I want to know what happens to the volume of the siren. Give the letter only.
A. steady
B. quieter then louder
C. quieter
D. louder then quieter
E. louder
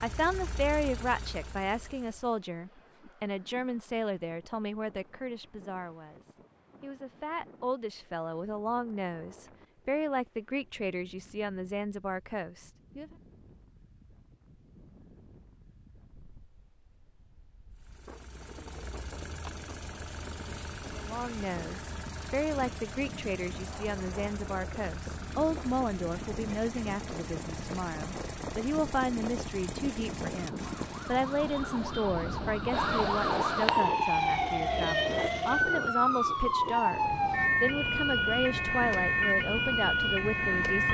E.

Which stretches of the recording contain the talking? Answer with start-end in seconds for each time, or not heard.
0.0-13.1, 20.9-37.0, 37.6-40.8.